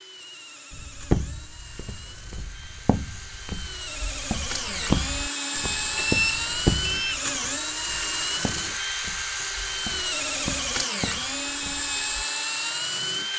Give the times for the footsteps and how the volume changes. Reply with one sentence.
You can hear the footsteps from 0.7 to 12.1 s, getting quieter then louder.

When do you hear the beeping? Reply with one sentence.
You can hear the beeping from 5.7 to 7.2 s.